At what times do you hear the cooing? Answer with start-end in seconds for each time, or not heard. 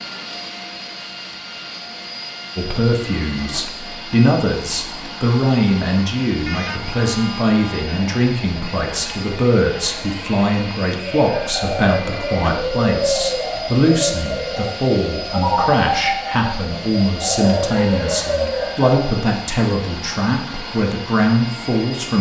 11.1-19.1.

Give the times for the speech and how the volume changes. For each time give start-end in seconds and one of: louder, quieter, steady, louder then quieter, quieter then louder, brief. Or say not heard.
2.5-22.1 steady.